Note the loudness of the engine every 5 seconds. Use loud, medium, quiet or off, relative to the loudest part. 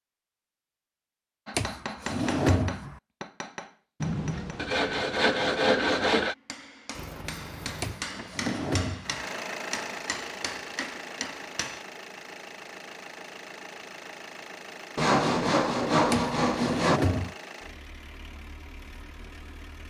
off, loud, loud, medium.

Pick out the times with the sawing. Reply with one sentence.
The sawing can be heard from 4.0 to 6.3 s and from 14.9 to 17.0 s.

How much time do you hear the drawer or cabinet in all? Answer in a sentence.
The drawer or cabinet can be heard for 4 seconds in total.